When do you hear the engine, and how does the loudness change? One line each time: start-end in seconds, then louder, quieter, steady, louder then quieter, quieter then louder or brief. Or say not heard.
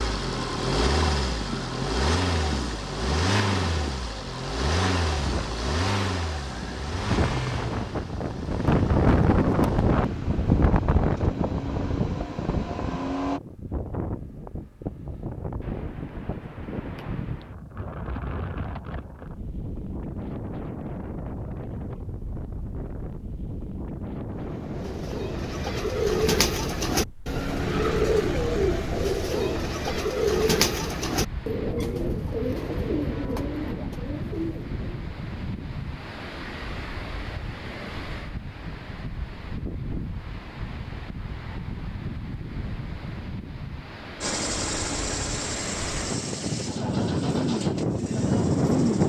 0.0-13.4 quieter then louder
44.2-49.0 quieter.